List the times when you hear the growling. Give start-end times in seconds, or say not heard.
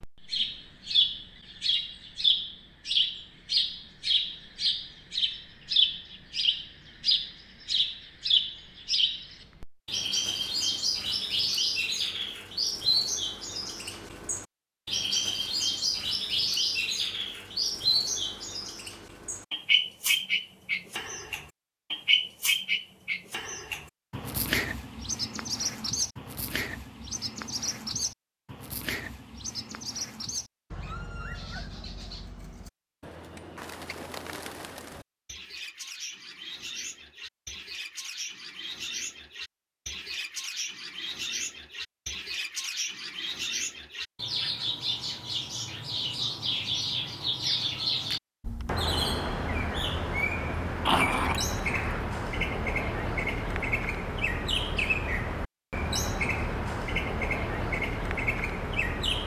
50.9-52.0.